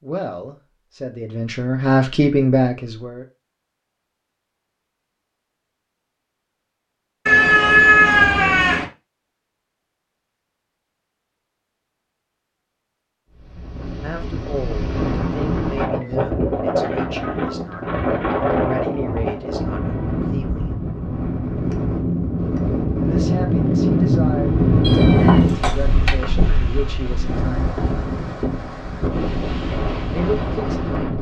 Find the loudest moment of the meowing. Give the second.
8 s.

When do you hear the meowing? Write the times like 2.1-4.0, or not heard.
7.2-8.8, 24.8-26.1.